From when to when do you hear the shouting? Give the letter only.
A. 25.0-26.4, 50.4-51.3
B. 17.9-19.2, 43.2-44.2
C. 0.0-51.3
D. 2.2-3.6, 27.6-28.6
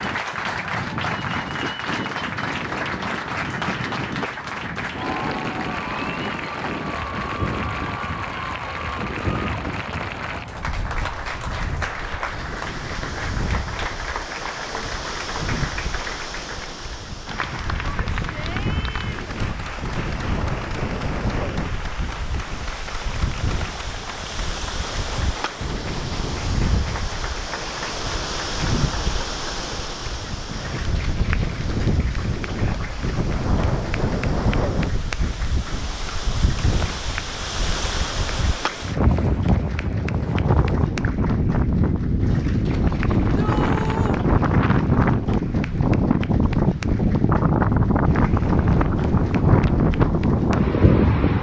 B.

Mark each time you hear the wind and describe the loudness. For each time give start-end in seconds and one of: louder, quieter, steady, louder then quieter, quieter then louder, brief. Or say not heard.
0.0-51.3 louder.